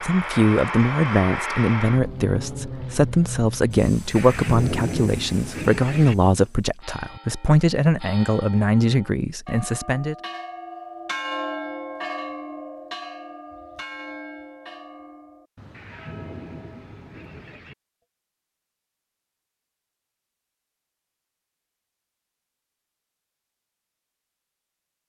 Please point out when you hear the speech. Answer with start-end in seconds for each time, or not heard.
0.0-10.2.